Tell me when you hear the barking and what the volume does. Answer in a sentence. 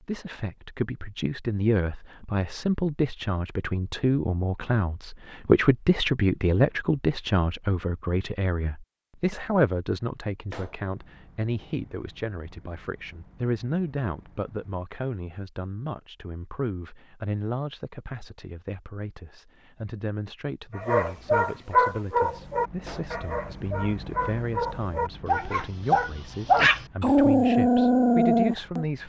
The barking can be heard from 20.8 to 28.9 s, getting quieter then louder.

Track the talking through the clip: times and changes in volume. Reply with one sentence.
You can hear the talking from 0.0 to 29.0 s, getting quieter.